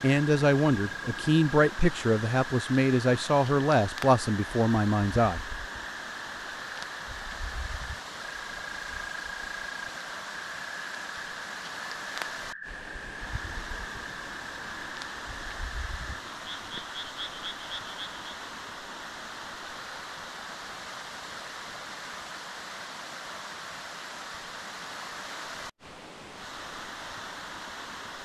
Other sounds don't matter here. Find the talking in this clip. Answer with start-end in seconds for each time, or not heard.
0.0-5.6.